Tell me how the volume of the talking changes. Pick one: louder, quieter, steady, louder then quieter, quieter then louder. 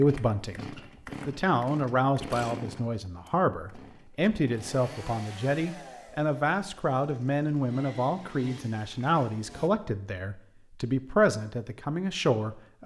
steady.